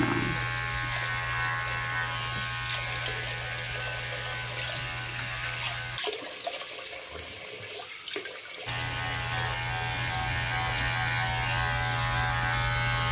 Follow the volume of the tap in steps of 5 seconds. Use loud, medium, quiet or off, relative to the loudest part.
loud, loud, medium.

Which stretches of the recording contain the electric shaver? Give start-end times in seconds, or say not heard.
0.0-6.0, 8.7-13.0.